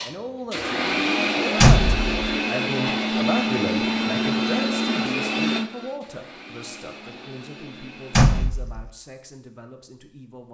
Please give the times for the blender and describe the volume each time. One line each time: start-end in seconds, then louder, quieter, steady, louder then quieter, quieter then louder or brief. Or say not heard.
0.0-8.5 quieter.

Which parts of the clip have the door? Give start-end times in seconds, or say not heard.
1.6-2.3, 8.1-8.9.